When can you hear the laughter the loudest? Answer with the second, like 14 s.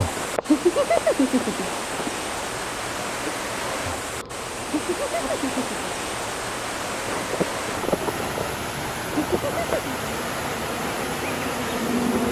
1 s.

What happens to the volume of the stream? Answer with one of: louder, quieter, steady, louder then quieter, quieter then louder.
steady.